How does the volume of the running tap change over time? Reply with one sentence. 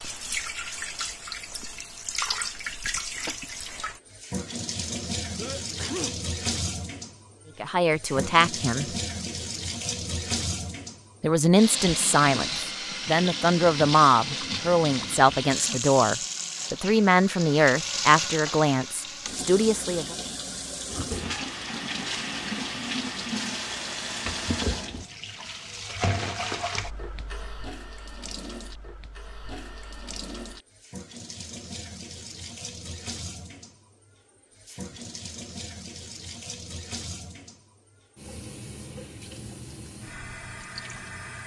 The loudness of the running tap goes down.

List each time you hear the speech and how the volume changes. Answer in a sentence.
The speech can be heard briefly from 7.6 to 8.8 s; and from 11.2 to 20.1 s, at a steady volume.